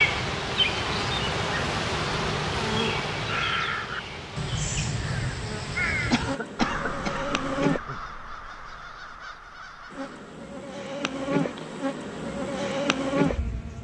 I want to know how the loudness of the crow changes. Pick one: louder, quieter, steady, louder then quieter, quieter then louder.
quieter.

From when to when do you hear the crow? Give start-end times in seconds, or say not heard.
3.2-10.3.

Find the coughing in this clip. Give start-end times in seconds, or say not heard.
6.1-8.0.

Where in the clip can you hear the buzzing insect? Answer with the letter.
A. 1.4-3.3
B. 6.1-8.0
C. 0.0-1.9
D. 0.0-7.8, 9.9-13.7
D.